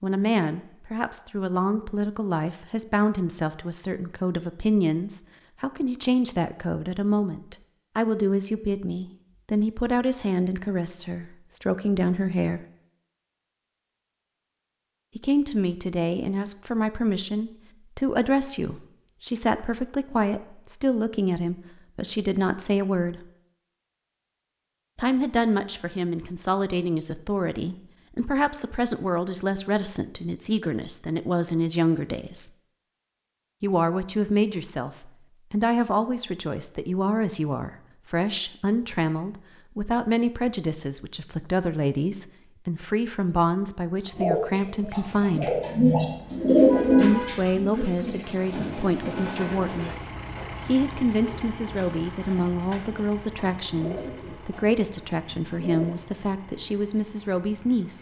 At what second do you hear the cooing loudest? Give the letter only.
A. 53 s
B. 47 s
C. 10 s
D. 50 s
B.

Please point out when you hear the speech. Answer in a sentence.
The speech can be heard from 0.0 to 12.7 s, from 15.2 to 23.2 s, from 24.9 to 32.5 s, from 33.6 to 45.5 s, from 47.0 to 50.0 s and from 50.6 to 57.9 s.